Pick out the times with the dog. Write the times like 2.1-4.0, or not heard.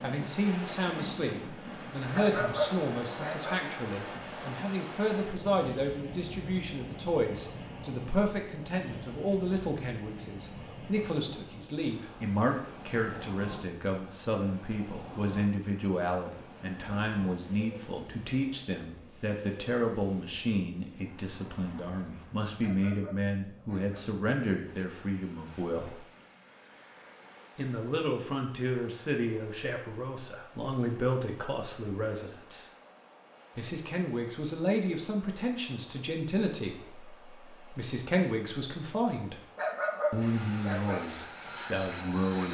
2.1-3.6, 22.6-24.1, 39.5-41.0.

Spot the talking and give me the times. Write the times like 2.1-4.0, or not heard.
0.0-26.0, 27.6-32.6, 33.5-39.4, 40.1-42.5.